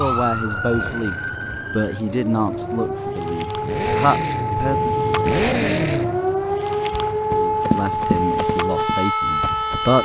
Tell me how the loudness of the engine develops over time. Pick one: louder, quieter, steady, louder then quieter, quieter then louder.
louder.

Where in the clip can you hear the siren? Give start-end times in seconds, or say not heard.
0.0-10.0.